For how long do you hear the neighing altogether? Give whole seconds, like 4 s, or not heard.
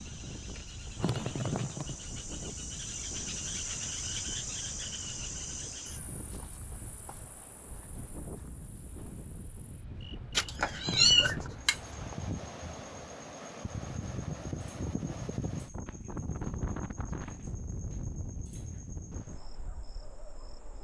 2 s.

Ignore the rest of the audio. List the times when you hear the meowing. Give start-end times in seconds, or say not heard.
10.3-12.2.